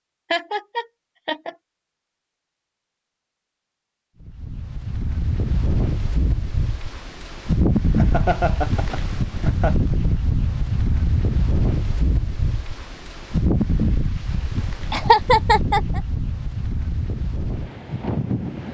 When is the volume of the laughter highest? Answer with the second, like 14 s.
15 s.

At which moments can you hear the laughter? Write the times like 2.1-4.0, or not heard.
0.3-1.6, 8.0-9.8, 14.9-16.0.